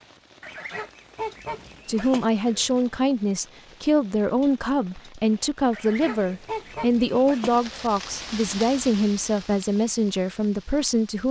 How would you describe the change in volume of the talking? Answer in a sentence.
The loudness of the talking stays about the same.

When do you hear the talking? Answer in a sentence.
You can hear the talking from 1.9 to 11.2 s.